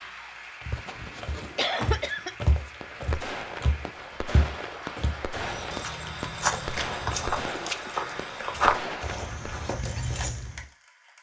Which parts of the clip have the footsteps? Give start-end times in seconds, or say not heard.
0.6-10.7.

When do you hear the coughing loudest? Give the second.
2 s.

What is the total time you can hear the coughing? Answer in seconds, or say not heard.
3 s.